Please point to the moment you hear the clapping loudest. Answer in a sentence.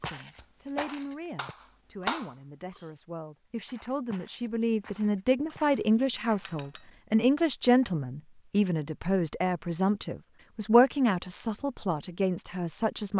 The volume of the clapping peaks at 2 seconds.